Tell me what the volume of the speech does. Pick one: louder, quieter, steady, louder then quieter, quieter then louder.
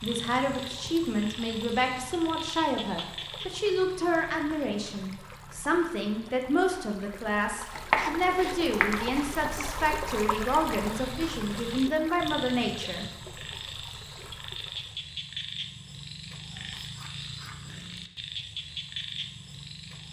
steady.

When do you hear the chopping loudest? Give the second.
8 s.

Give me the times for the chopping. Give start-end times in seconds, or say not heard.
7.8-9.6.